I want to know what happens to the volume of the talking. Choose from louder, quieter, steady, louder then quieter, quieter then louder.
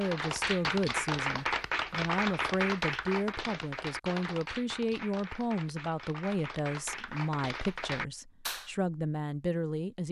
steady.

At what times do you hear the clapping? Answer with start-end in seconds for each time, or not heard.
0.0-8.7.